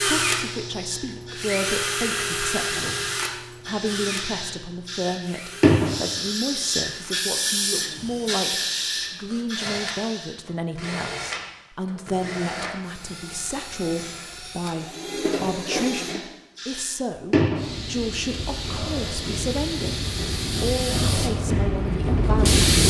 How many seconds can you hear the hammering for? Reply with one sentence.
You can't hear the hammering here.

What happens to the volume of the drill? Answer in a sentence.
The loudness of the drill goes down, then up.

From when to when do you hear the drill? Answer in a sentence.
You can hear the drill from 0.0 to 16.2 s.